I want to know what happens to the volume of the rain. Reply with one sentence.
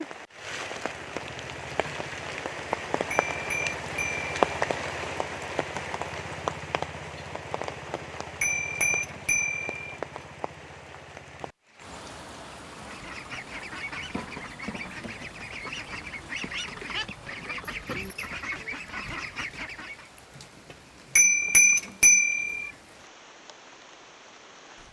The loudness of the rain goes down.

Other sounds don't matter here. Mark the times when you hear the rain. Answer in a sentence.
The rain can be heard from 0.0 to 24.8 s.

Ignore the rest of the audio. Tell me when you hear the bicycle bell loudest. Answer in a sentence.
The loudest moment of the bicycle bell is at 22 seconds.